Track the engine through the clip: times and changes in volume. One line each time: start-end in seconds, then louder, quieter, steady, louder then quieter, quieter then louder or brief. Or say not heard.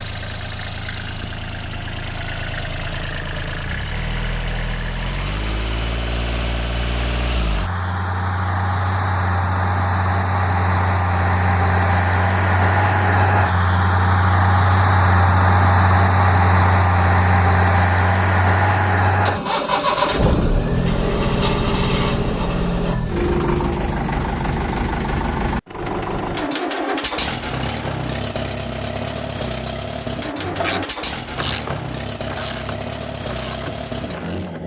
0.0-34.6 louder then quieter.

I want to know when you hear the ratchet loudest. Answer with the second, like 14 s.
31 s.